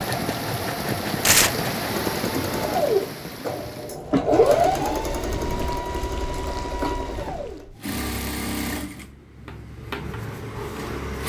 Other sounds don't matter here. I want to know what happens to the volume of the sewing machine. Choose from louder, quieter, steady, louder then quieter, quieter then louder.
louder then quieter.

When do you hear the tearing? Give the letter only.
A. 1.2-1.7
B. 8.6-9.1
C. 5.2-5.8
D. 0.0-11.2
A.